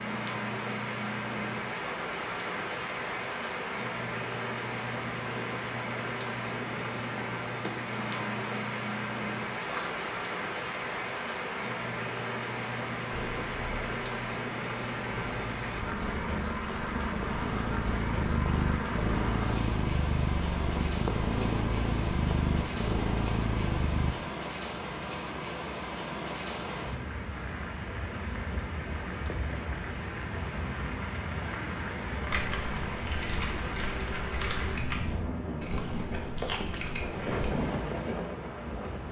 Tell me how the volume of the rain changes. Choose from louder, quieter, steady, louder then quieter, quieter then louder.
steady.